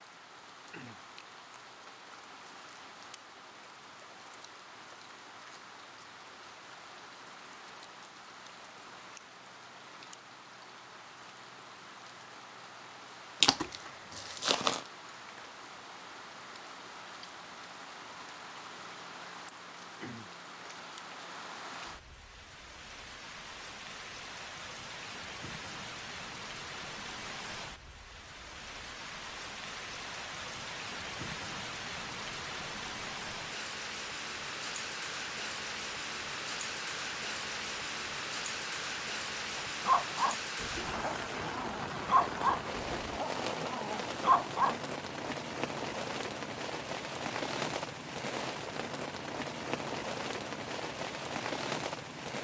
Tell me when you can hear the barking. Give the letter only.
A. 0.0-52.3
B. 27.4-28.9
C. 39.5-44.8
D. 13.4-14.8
C.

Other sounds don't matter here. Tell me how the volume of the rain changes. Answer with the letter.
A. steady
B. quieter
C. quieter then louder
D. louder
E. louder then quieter
D.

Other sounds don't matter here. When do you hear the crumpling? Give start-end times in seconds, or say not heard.
13.4-14.8.